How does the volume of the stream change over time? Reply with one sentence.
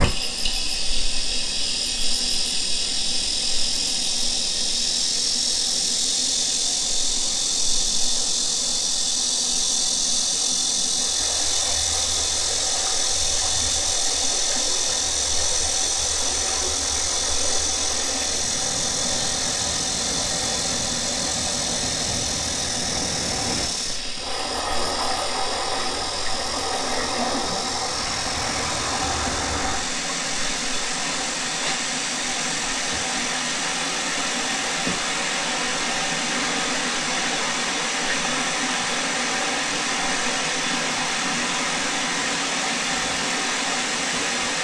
The volume of the stream goes up.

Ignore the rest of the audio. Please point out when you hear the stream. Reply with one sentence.
You can hear the stream from 0.0 to 44.5 s.